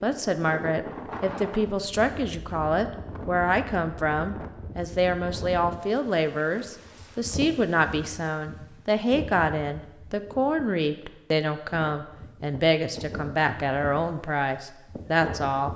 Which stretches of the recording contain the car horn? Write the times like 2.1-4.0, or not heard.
not heard.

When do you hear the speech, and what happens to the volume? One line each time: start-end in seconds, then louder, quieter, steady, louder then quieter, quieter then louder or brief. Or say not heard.
0.0-15.7 steady.